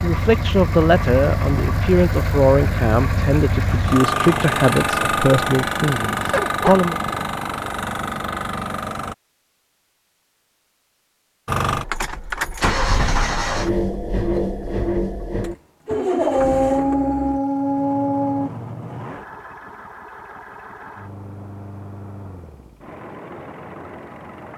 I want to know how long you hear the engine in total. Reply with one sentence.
The engine can be heard for 22 seconds in total.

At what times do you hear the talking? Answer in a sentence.
The talking can be heard from 0.0 to 7.0 s.